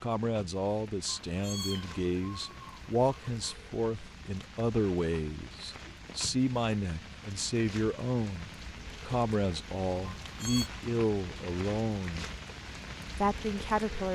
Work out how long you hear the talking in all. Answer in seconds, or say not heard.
13 s.